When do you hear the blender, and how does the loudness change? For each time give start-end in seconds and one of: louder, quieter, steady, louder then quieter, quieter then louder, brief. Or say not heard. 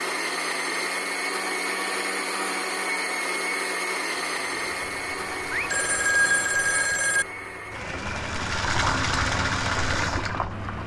0.0-10.8 quieter.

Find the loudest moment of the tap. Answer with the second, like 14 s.
9 s.